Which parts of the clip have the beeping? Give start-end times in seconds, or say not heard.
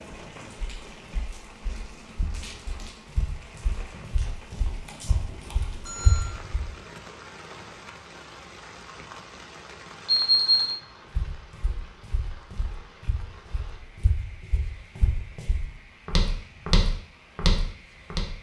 4.8-6.2, 10.1-10.8.